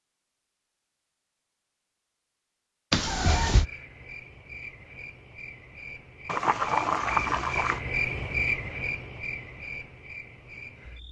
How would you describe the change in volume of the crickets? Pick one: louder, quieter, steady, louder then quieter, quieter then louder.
louder then quieter.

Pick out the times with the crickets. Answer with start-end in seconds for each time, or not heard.
3.5-11.0.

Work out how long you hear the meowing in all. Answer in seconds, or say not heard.
2 s.